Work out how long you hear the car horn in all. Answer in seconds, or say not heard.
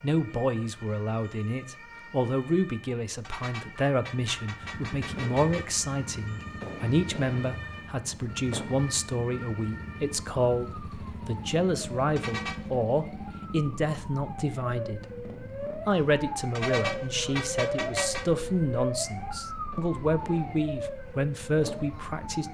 5 s.